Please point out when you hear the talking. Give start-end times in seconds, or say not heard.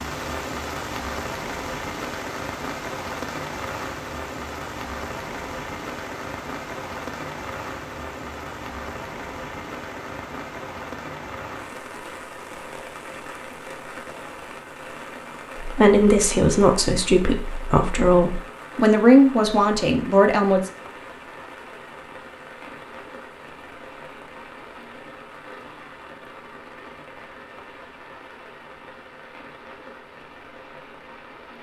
15.6-20.7.